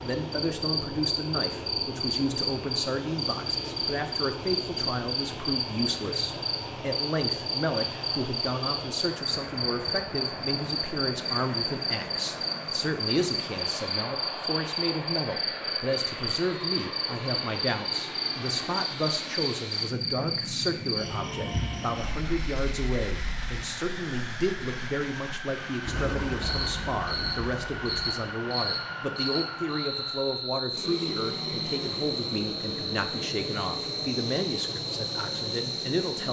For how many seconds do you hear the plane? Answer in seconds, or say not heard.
36 s.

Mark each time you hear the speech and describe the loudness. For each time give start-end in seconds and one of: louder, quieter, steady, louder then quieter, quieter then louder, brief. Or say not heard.
0.0-36.2 steady.